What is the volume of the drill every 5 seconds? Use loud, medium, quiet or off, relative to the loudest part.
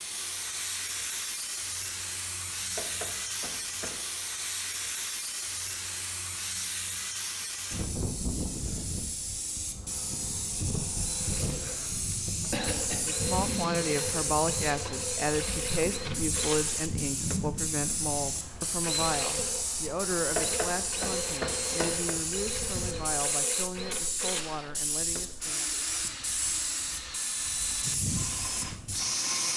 off, off, loud, loud, loud, loud.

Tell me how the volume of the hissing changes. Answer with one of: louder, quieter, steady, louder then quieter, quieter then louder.
steady.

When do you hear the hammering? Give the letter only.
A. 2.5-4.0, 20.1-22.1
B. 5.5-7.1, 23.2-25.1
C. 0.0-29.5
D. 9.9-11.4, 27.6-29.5
A.